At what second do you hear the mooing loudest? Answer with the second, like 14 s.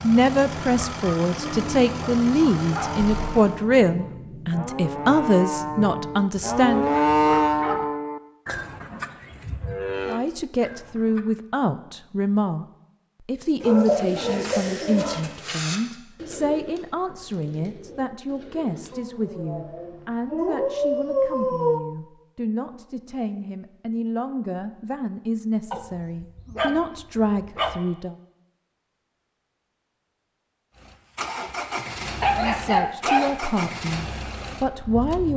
7 s.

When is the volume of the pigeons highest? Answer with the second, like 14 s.
14 s.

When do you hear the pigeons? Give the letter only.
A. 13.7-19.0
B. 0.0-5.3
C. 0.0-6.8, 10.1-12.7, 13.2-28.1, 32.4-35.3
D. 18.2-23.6
A.